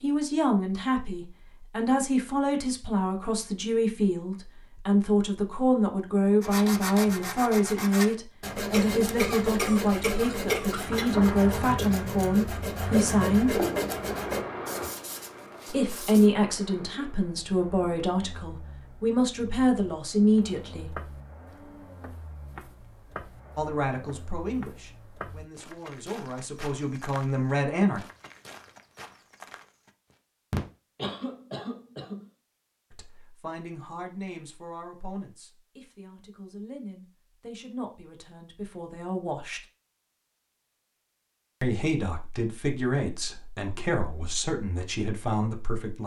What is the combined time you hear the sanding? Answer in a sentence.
The sanding can be heard for 10 seconds in total.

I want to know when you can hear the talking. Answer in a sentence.
The talking can be heard from 0.0 to 13.6 s, from 15.7 to 20.9 s, from 23.6 to 28.0 s, from 32.9 to 39.6 s and from 41.6 to 46.0 s.